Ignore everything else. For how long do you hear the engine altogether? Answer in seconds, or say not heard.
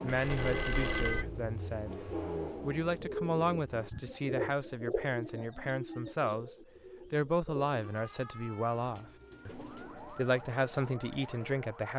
4 s.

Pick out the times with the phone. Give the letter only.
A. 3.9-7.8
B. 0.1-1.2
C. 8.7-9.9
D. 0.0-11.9
B.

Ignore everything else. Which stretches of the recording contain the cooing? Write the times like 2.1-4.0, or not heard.
1.1-11.6.